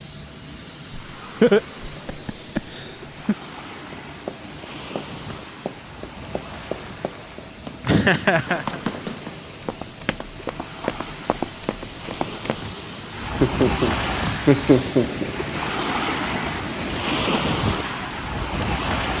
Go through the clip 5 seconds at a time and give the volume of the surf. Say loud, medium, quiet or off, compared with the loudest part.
quiet, quiet, medium, loud.